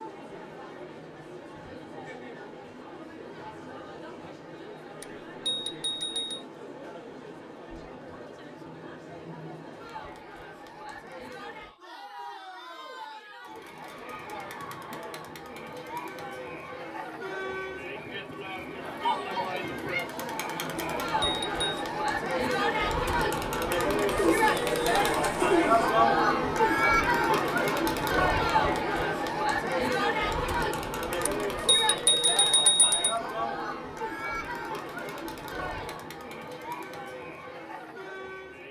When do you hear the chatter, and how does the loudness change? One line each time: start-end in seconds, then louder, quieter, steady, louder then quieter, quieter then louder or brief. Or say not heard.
0.0-38.6 louder then quieter.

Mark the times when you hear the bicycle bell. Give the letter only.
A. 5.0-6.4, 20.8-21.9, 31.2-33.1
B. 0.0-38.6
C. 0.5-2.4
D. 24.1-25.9
A.